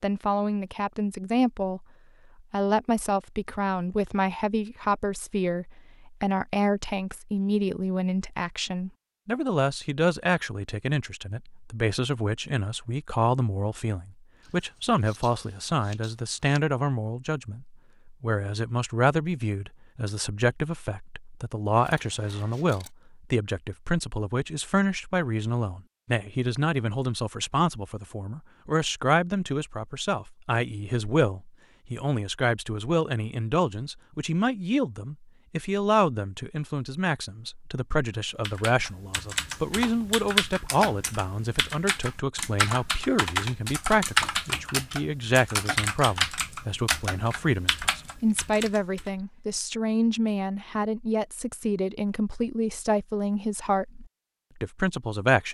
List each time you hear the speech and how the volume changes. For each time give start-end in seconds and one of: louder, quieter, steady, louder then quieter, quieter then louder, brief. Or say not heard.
0.0-1.9 brief
2.5-55.5 steady.